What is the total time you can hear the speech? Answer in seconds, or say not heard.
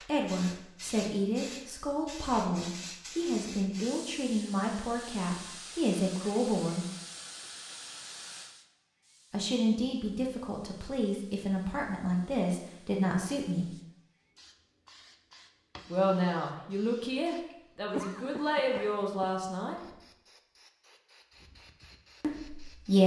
16 s.